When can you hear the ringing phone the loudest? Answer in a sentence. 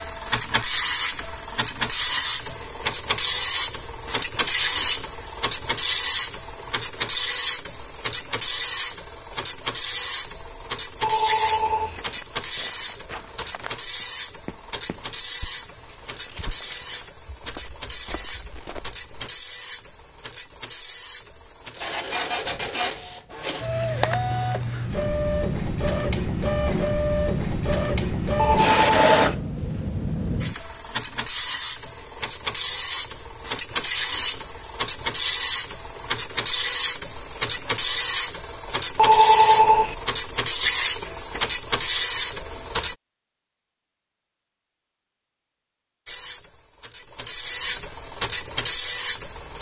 The volume of the ringing phone peaks at 39 seconds.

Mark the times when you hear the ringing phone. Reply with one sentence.
The ringing phone can be heard from 11.0 to 12.0 s, from 28.4 to 29.3 s and from 39.0 to 40.0 s.